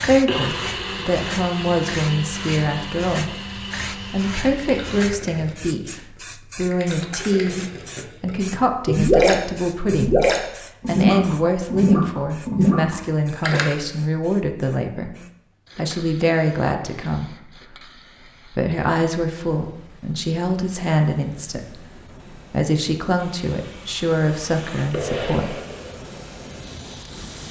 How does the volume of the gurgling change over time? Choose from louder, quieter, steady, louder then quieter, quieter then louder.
louder.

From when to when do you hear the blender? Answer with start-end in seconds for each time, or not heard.
0.1-5.0, 23.1-27.4.